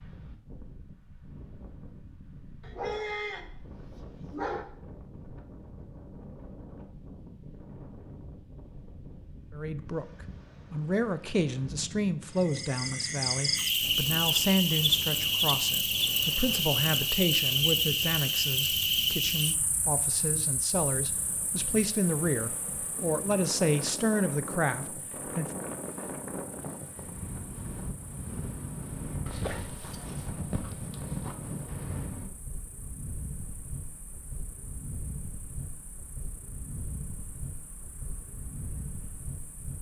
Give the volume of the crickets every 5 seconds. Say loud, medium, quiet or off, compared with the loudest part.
off, off, loud, loud, quiet, quiet, quiet, quiet.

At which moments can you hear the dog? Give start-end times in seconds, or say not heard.
2.6-4.7, 29.2-31.4.